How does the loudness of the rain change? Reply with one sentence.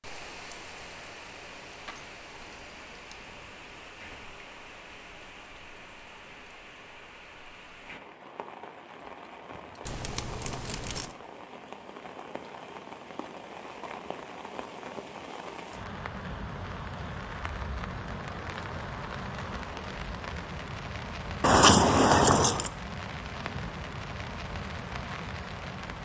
The volume of the rain goes up.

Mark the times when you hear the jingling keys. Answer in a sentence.
You can hear the jingling keys from 1.9 to 3.2 s, from 9.8 to 11.2 s and from 21.4 to 22.7 s.